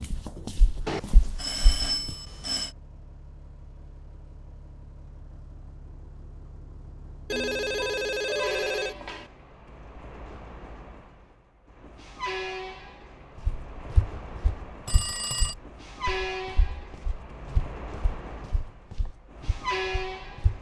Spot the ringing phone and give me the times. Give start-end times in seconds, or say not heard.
0.8-2.8, 7.3-9.3, 14.8-15.6.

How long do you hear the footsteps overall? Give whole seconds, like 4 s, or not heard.
9 s.